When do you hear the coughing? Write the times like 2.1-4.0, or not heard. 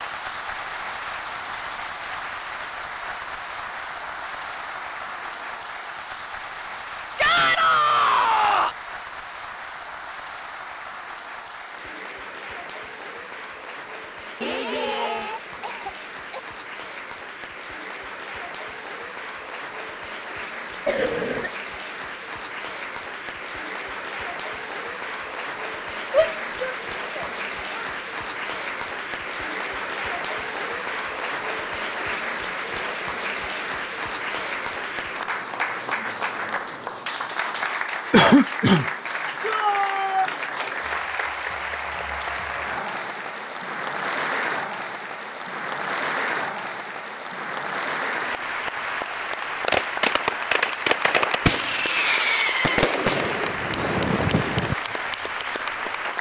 14.4-16.4, 20.9-21.5, 38.1-38.9.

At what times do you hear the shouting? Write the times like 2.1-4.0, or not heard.
7.2-8.8, 26.1-27.9, 39.4-40.3.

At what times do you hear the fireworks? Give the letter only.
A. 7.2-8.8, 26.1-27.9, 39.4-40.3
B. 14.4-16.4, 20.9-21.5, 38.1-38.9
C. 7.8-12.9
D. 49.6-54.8
D.